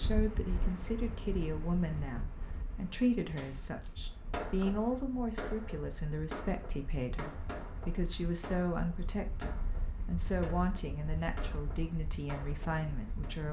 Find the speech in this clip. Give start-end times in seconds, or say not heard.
0.0-13.4.